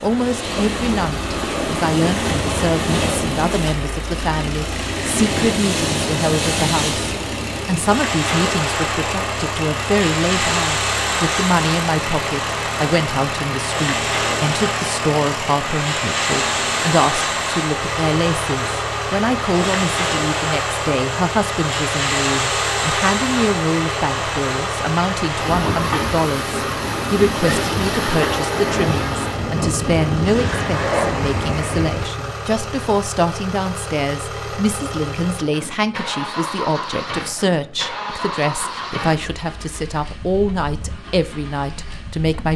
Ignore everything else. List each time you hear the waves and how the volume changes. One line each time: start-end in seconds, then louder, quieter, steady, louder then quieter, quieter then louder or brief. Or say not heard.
0.0-32.1 steady.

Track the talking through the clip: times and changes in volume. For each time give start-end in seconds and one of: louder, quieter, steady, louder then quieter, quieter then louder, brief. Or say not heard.
0.0-42.5 steady.